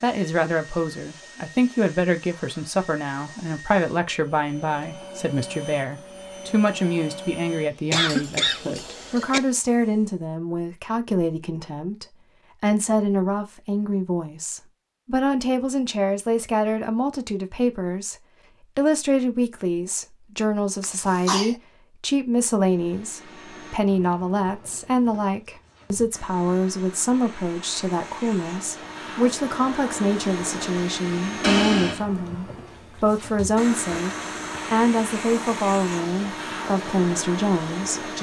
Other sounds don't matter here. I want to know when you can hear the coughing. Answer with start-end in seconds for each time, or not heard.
7.9-9.4, 20.8-21.6, 31.4-32.0.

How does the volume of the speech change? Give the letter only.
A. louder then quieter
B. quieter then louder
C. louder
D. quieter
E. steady
E.